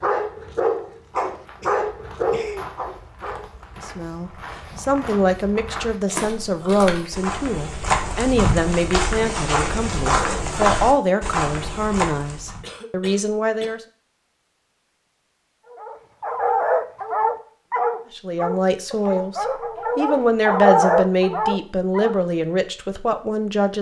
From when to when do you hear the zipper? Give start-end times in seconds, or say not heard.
not heard.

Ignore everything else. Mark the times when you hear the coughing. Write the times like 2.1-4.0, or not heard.
1.1-2.6, 12.6-13.8.